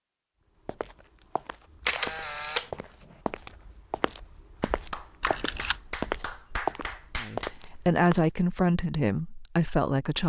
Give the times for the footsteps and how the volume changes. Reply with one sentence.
The footsteps can be heard from 0.7 to 8.3 s, getting louder.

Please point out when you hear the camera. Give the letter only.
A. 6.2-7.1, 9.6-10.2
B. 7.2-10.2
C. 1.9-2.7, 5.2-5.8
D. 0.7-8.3
C.